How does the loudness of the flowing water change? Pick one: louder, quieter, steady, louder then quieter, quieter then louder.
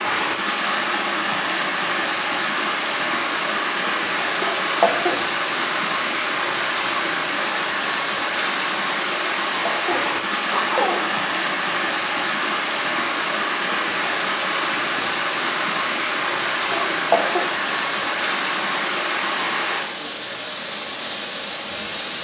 steady.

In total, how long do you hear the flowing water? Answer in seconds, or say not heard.
22 s.